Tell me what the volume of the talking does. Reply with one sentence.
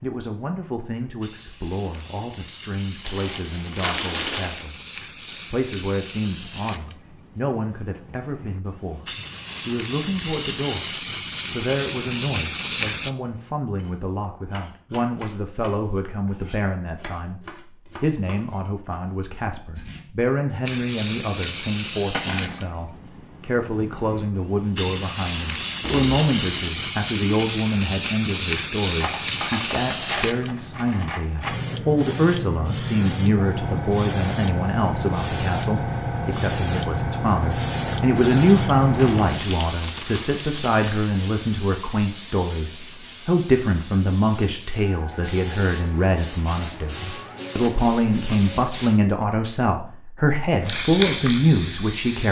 The loudness of the talking goes up.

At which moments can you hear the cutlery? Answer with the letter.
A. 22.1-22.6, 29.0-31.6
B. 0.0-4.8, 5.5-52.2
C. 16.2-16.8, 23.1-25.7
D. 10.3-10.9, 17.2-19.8
A.